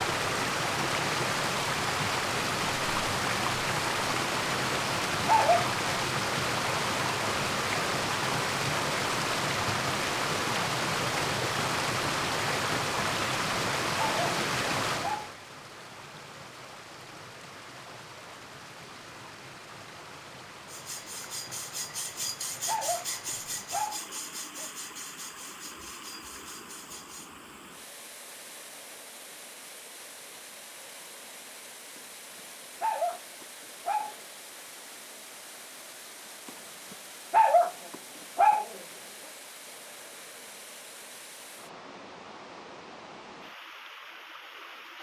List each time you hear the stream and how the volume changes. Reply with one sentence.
You can hear the stream from 0.0 to 44.9 s, getting quieter.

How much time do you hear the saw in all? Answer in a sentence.
You can hear the saw for 7 seconds altogether.